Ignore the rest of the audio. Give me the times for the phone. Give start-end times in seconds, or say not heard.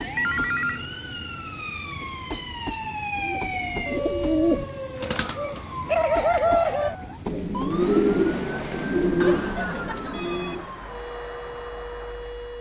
0.1-0.9, 5.5-6.4, 9.2-10.7.